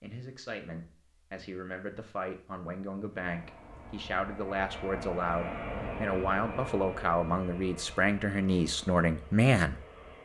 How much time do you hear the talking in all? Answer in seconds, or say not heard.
10 s.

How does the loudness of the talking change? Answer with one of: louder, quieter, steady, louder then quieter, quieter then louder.
louder.